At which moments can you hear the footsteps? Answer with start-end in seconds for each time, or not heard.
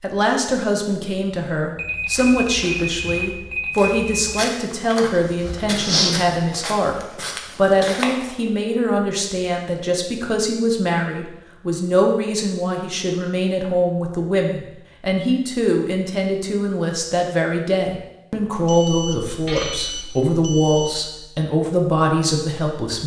2.1-8.3.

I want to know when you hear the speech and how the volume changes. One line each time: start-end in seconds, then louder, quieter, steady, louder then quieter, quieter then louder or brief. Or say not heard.
0.0-7.0 steady
7.5-23.0 steady.